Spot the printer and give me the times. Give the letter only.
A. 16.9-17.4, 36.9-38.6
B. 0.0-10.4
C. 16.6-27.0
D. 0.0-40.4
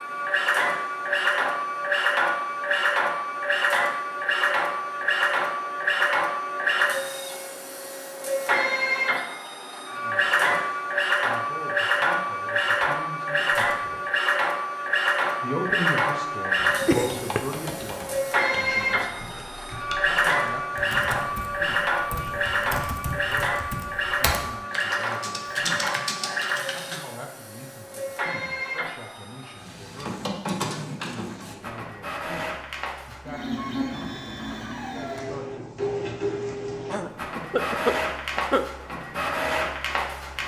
D.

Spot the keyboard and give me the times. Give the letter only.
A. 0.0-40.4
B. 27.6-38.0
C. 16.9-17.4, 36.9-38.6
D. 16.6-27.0
D.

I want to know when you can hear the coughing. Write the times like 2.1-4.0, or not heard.
16.9-17.4, 36.9-38.6.